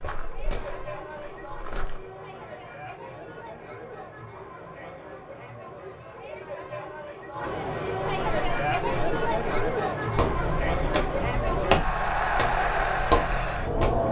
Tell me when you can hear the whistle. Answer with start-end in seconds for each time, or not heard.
not heard.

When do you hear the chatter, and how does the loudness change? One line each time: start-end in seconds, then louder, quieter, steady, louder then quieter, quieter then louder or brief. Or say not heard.
0.0-14.0 louder.